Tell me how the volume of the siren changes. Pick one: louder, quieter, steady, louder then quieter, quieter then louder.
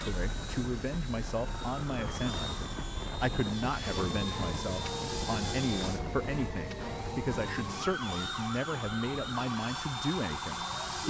louder.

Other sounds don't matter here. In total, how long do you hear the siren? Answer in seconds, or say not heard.
11 s.